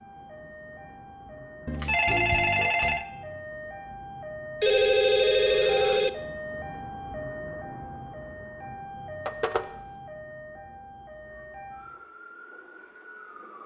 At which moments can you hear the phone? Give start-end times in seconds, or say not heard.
1.6-3.0, 4.6-6.1, 9.2-9.7.